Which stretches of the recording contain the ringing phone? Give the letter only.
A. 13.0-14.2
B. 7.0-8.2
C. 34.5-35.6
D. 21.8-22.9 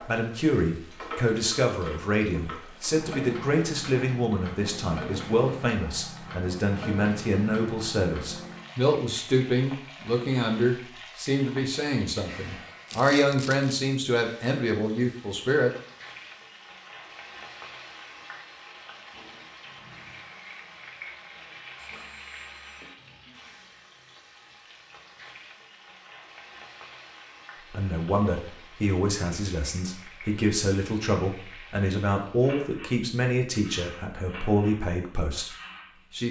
D.